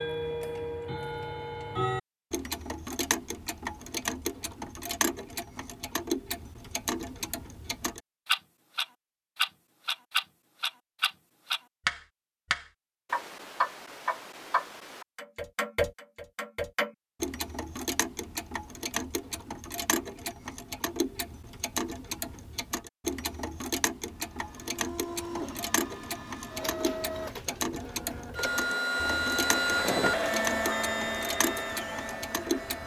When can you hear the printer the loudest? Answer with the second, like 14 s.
30 s.